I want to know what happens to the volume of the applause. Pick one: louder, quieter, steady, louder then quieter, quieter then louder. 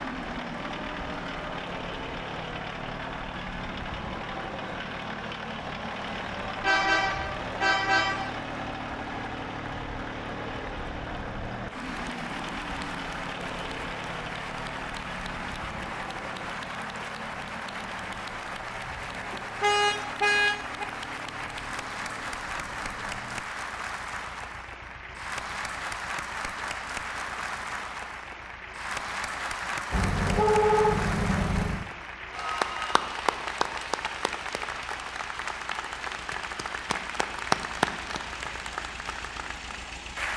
louder.